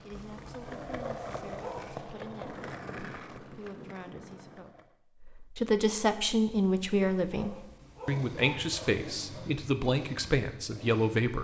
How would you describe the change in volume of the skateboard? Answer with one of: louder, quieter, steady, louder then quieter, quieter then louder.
quieter.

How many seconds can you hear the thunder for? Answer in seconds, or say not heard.
2 s.